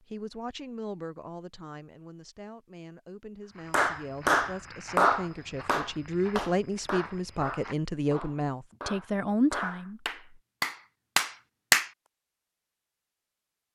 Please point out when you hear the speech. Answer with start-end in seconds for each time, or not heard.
0.1-10.3.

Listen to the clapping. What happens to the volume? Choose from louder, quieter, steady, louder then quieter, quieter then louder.
quieter then louder.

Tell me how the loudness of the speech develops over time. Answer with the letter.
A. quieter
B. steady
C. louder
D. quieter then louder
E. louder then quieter
C.